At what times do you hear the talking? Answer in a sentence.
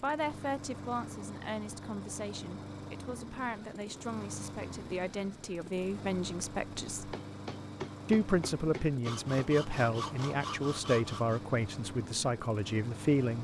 The talking can be heard from 0.0 to 7.2 s and from 8.1 to 13.3 s.